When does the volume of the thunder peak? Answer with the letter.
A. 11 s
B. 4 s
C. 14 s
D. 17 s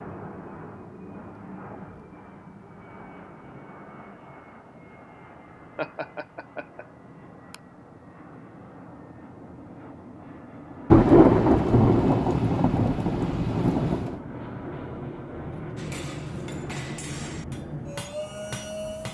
A.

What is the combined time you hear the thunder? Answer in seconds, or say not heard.
3 s.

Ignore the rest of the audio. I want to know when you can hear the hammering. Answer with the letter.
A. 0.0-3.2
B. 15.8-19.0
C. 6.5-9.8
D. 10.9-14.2
B.